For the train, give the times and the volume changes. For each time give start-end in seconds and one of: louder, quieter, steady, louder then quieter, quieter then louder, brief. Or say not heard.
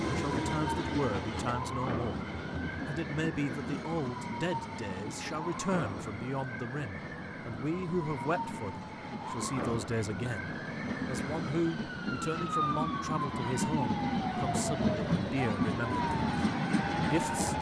0.0-17.5 quieter then louder.